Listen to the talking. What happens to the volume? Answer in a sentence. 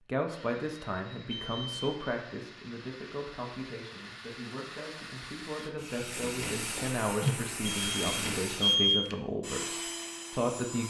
The volume of the talking goes down, then up.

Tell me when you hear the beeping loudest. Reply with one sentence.
The loudest moment of the beeping is at 9 seconds.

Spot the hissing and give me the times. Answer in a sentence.
The hissing can be heard from 6.0 to 8.6 s.